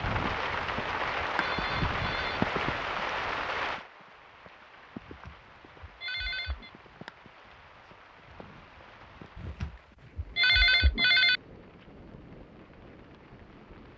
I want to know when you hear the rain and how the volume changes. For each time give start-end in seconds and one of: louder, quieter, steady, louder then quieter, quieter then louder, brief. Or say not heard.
0.0-13.9 quieter.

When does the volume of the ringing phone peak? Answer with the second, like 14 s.
11 s.